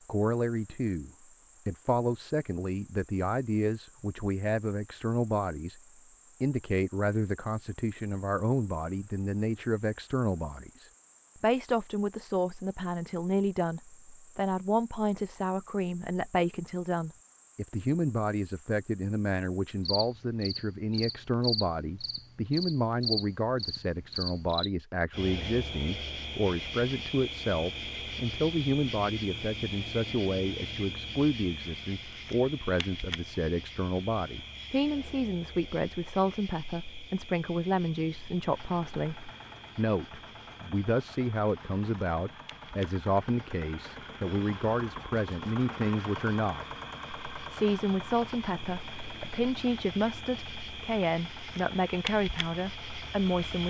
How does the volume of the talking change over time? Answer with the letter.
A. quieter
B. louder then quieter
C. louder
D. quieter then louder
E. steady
E.